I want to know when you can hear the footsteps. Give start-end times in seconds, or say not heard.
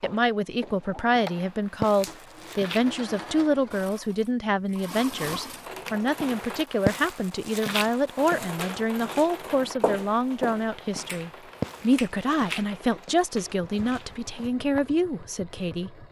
0.0-3.0, 6.1-14.8.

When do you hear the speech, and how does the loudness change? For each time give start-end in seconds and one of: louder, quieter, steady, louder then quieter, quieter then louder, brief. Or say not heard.
0.0-16.0 steady.